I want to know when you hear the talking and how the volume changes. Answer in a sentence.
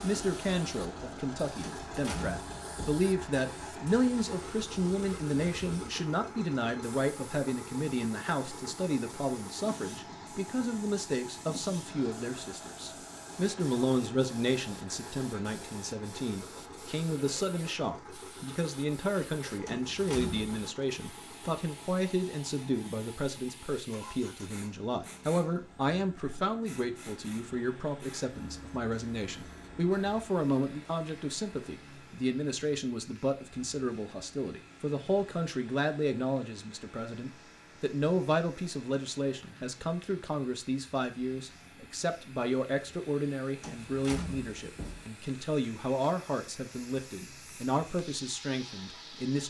The talking can be heard from 0.0 to 49.4 s, at a steady volume.